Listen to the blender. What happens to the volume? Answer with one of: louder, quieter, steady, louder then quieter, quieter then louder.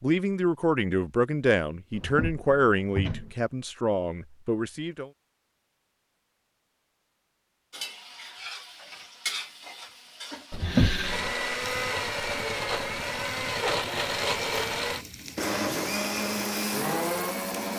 steady.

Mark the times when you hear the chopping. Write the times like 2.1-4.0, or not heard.
not heard.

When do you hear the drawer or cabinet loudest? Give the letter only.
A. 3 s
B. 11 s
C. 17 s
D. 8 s
B.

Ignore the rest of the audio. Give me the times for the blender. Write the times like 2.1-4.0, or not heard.
10.6-17.7.